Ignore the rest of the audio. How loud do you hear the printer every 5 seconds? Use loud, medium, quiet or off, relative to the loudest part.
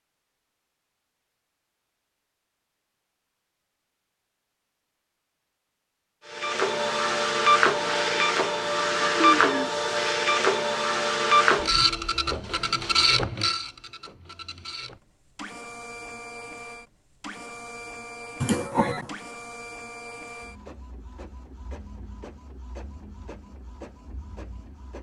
off, loud, loud, quiet, quiet.